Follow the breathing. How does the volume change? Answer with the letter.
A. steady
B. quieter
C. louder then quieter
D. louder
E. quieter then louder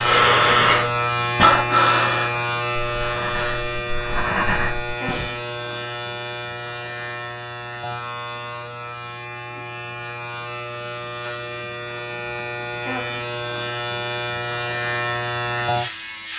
E.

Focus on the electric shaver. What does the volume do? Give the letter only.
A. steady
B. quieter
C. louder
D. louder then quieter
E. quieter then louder
E.